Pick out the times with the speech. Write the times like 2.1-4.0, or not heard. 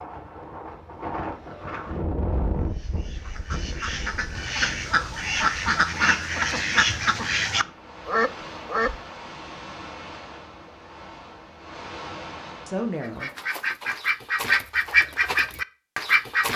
12.7-13.3.